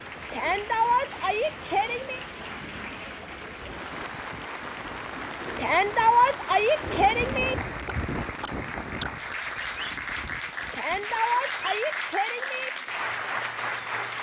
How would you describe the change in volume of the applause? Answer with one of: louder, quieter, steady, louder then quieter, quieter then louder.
louder.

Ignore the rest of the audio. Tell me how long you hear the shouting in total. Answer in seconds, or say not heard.
6 s.